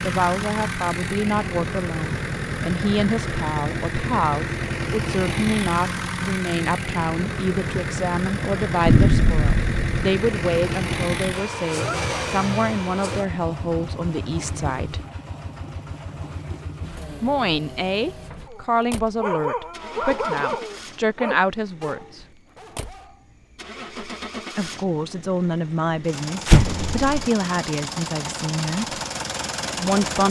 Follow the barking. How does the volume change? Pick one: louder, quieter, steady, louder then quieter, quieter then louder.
quieter.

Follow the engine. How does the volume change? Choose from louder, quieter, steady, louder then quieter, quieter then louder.
quieter then louder.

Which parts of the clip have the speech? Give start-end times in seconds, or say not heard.
0.0-15.0, 17.2-22.2, 24.6-29.0, 29.8-30.2.